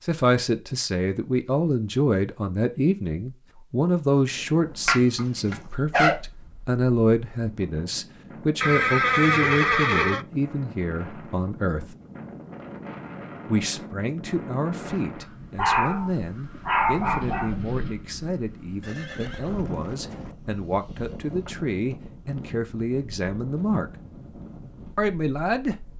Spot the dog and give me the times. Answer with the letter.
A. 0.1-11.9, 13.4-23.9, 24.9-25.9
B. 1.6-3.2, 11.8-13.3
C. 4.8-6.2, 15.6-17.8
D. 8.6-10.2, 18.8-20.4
C.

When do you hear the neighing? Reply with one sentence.
You can hear the neighing from 8.6 to 10.2 s and from 18.8 to 20.4 s.